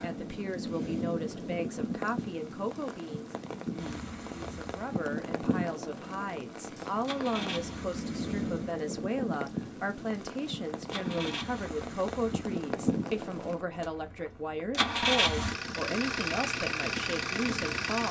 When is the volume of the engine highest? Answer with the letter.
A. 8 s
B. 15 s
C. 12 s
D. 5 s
B.